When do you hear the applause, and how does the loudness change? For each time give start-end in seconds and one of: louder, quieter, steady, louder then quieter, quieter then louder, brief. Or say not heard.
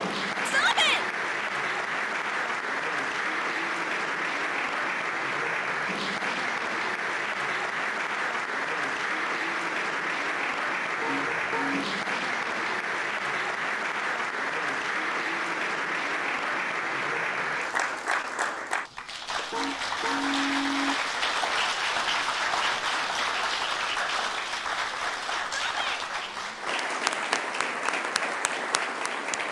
0.0-29.4 steady.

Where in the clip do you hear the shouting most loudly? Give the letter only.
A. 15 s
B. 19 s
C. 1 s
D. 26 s
C.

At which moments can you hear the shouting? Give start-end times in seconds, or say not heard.
0.5-1.1, 25.4-26.1.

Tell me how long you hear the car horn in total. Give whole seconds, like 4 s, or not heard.
2 s.